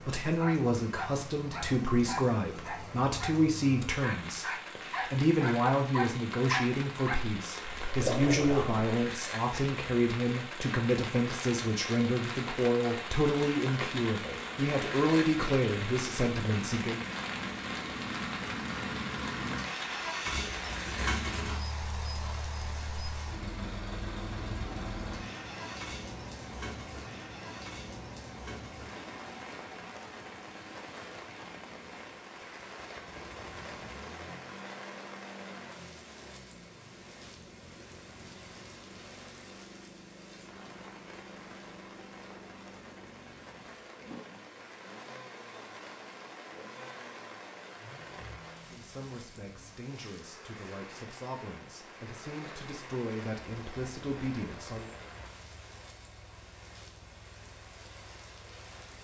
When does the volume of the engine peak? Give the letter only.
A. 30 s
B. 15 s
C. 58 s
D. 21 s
D.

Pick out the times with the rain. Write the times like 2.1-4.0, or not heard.
0.0-58.9.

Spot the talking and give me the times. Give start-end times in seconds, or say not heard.
0.0-17.0, 48.7-54.9.